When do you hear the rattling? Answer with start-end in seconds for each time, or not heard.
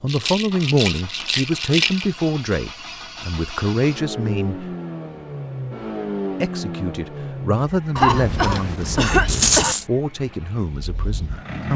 0.1-2.0, 9.2-9.8.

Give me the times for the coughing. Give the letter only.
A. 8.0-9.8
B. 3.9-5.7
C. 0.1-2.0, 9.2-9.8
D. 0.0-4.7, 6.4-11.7
A.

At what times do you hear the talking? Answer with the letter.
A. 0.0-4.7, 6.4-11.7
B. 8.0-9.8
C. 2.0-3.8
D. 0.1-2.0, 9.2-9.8
A.